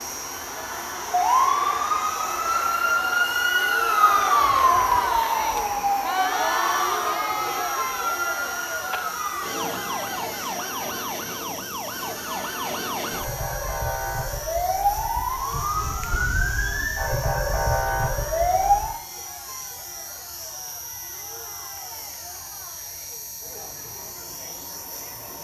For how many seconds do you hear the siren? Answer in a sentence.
You can hear the siren for 19 seconds altogether.